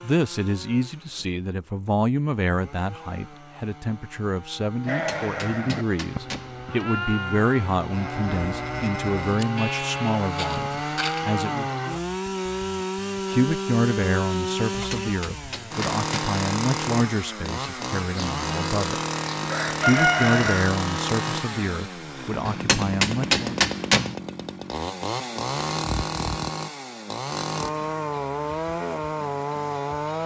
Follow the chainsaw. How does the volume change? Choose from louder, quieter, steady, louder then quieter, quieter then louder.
louder.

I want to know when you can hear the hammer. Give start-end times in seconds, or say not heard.
4.8-6.7, 14.7-16.4, 22.4-24.1.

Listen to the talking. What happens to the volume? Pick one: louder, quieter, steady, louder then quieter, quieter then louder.
steady.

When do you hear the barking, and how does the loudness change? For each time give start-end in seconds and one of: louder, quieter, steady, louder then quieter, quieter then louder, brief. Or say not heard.
not heard.